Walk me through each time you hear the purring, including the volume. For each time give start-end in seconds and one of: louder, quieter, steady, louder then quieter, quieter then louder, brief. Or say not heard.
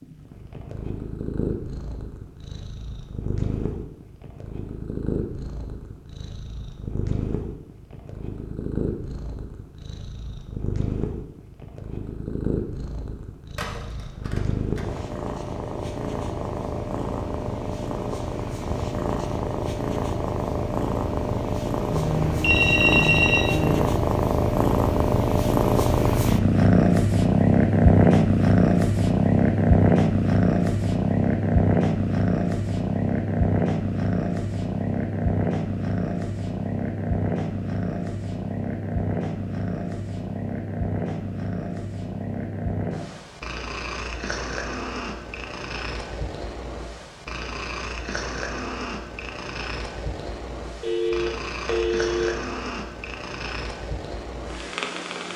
0.0-55.3 louder then quieter.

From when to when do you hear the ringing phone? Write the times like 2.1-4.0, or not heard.
13.6-15.1, 21.9-23.9, 50.8-52.4.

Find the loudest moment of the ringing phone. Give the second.
23 s.